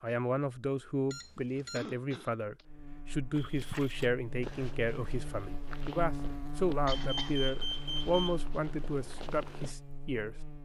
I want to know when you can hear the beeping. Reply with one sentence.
The beeping can be heard from 1.1 to 1.9 s and from 6.9 to 8.4 s.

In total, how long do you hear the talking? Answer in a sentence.
The talking can be heard for 10 seconds in total.